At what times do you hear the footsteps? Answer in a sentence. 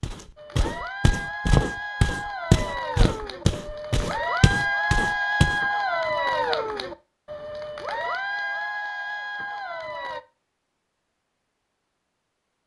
You can hear the footsteps from 0.0 to 5.6 s.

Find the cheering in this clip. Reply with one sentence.
You can hear the cheering from 0.3 to 10.2 s.